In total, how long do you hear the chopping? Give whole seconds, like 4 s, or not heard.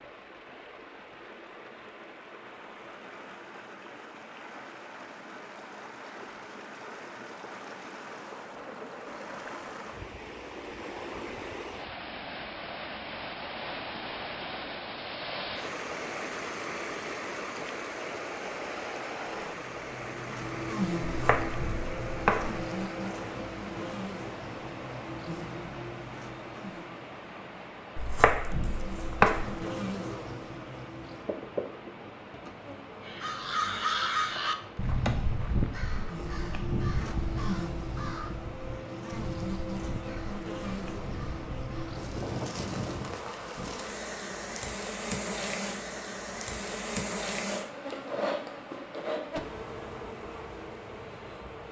3 s.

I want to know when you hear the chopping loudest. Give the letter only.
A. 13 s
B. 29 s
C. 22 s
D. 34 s
B.